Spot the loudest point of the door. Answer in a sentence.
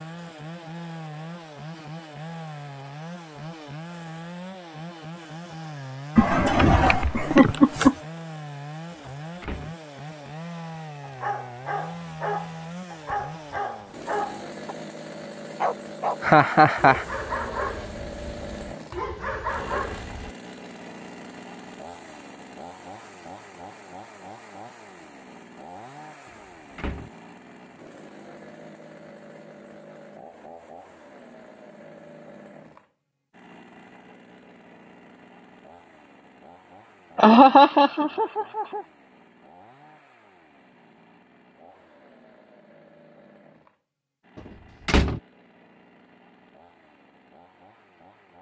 The loudest moment of the door is at 45 seconds.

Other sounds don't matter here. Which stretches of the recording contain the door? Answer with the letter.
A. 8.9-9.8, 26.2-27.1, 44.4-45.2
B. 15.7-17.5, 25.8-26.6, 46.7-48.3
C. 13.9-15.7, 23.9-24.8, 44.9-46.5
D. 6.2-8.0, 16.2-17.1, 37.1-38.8
A.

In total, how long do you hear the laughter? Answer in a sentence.
The laughter can be heard for 4 seconds in total.